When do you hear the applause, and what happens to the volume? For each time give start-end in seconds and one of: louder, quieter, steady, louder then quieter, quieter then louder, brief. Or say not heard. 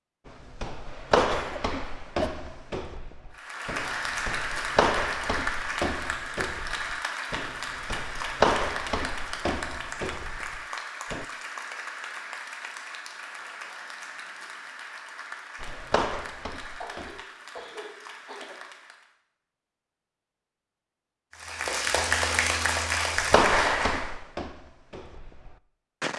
3.3-19.1 quieter
21.3-24.1 brief.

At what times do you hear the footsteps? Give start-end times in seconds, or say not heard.
0.2-11.2, 15.6-17.2, 23.1-26.1.